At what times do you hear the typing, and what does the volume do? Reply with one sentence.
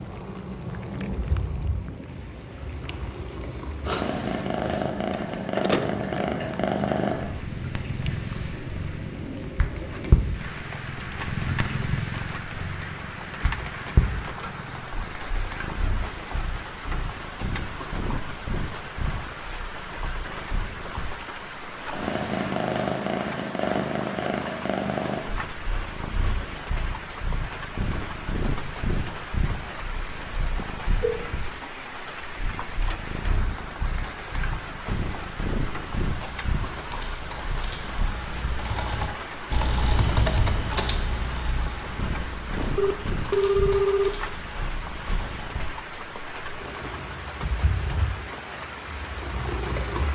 The typing can be heard from 35.8 to 45.5 s, getting louder then quieter.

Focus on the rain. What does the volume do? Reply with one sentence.
The volume of the rain stays about the same.